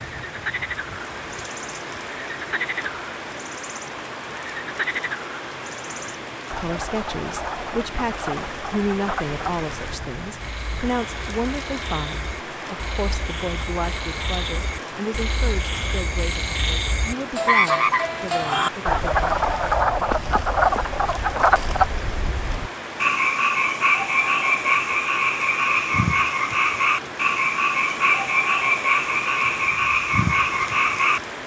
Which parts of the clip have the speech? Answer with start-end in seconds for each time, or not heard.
6.5-19.3.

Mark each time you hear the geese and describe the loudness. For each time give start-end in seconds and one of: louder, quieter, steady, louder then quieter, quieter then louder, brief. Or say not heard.
not heard.